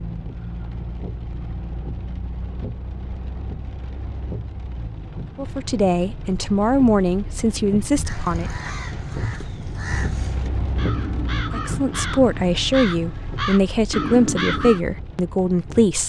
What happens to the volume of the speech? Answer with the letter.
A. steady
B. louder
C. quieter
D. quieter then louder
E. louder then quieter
A.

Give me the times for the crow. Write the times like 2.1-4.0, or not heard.
8.1-14.8.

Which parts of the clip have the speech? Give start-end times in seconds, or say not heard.
5.3-8.5, 11.5-16.0.